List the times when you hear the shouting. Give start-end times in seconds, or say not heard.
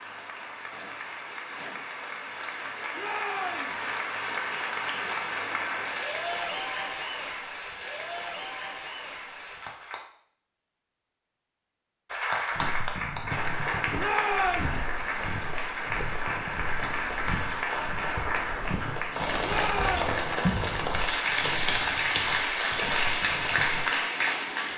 3.0-3.8, 13.9-14.8, 19.4-20.1.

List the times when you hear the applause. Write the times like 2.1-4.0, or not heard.
0.0-10.0, 12.1-24.7.